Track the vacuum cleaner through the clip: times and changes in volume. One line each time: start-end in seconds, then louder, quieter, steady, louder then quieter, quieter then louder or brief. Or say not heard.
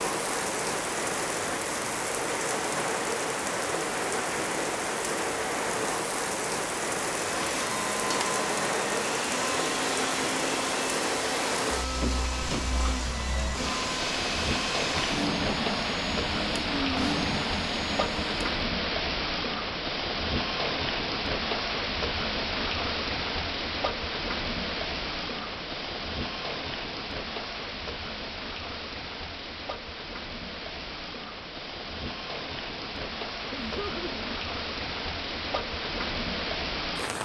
7.2-18.6 steady.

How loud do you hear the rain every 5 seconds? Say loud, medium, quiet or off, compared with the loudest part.
loud, loud, loud, loud, loud, medium, medium, loud.